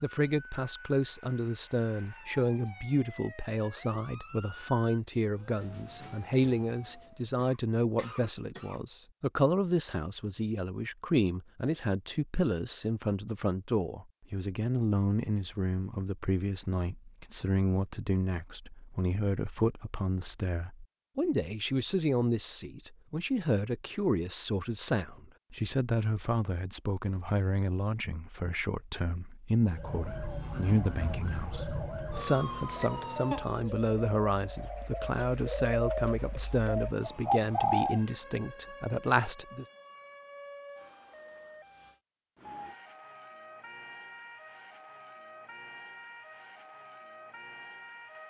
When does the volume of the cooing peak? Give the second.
38 s.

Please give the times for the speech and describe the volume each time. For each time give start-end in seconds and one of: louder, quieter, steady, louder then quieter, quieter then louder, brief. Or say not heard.
0.0-39.6 steady.